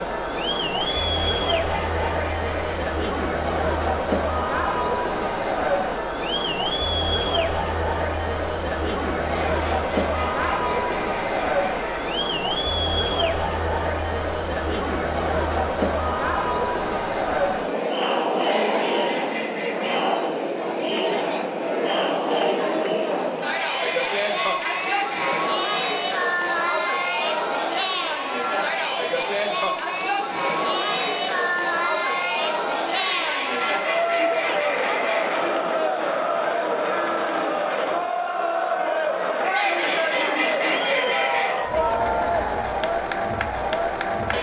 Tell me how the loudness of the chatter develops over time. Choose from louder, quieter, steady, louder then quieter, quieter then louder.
steady.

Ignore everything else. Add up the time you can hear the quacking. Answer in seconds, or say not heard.
13 s.